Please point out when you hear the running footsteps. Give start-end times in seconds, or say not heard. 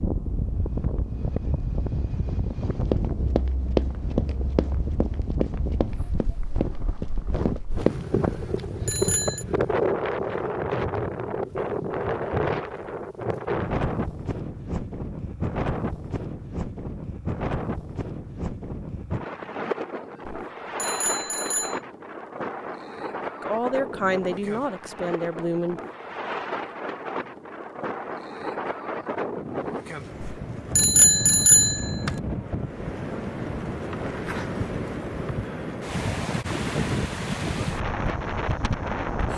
2.5-8.3.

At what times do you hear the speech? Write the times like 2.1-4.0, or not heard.
23.4-25.9.